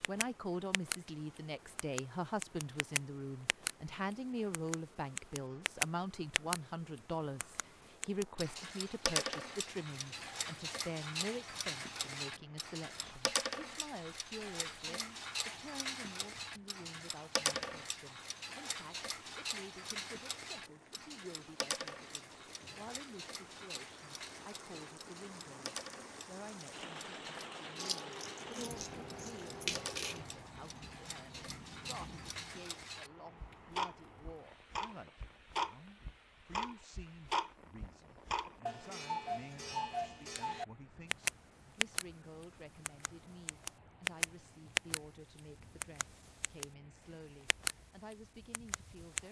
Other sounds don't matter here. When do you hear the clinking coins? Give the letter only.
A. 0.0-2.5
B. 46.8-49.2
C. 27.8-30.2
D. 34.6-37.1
C.